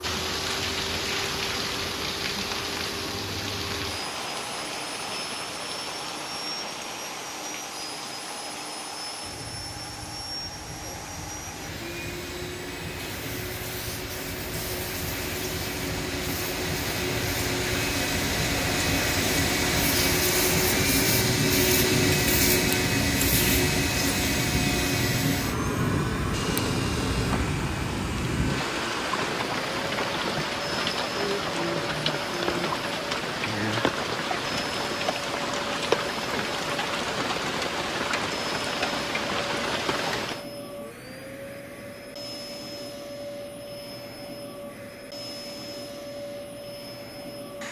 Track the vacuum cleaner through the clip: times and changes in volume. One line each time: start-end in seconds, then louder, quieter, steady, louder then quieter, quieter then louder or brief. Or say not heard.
0.0-47.6 louder then quieter.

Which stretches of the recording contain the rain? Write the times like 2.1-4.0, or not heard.
0.0-40.5.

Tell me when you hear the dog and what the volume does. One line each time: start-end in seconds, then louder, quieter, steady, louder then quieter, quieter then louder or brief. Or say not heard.
not heard.